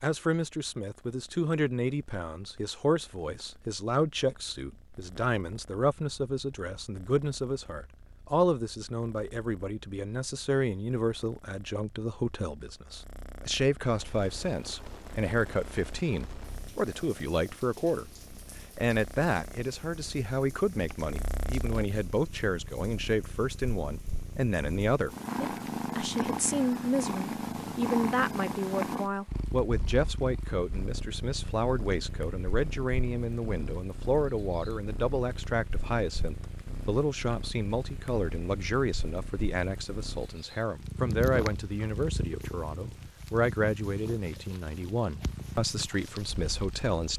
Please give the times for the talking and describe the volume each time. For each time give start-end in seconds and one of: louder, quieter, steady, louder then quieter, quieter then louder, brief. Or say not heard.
0.0-18.1 steady
18.8-47.1 steady.